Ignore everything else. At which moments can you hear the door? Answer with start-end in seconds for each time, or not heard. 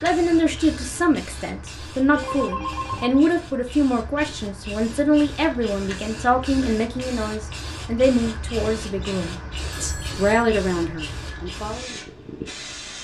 not heard.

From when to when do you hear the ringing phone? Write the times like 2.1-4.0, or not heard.
2.1-3.2, 9.7-10.5.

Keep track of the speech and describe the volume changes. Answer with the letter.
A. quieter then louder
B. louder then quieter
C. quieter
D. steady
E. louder
D.